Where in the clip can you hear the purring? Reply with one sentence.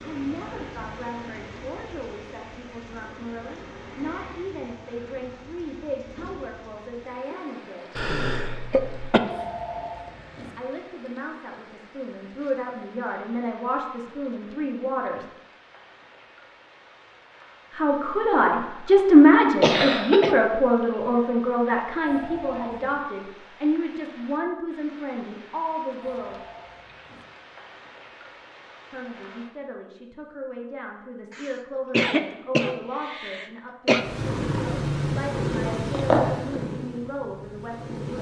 You can hear the purring from 34.0 to 38.1 s.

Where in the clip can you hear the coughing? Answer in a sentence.
You can hear the coughing from 8.0 to 9.2 s, from 19.6 to 20.4 s and from 31.3 to 34.0 s.